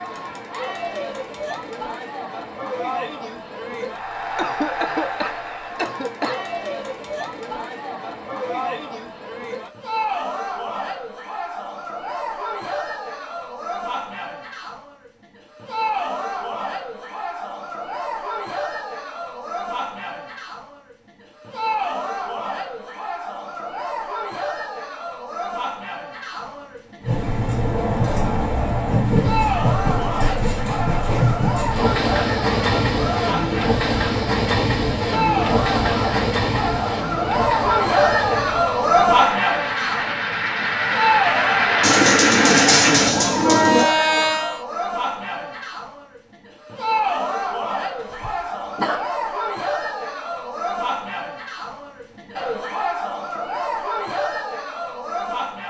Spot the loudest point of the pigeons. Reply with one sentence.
The volume of the pigeons peaks at 43 seconds.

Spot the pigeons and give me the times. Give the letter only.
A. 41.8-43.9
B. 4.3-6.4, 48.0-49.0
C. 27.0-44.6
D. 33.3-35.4
A.